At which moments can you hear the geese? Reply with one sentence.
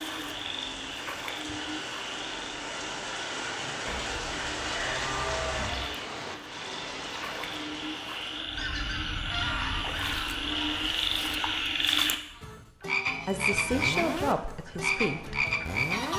The geese can be heard from 8.6 to 16.1 s.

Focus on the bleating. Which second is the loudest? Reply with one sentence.
The loudest moment of the bleating is at 5 seconds.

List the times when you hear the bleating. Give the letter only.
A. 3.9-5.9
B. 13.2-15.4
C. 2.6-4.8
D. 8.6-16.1
A.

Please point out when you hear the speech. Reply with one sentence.
The speech can be heard from 13.2 to 15.4 s.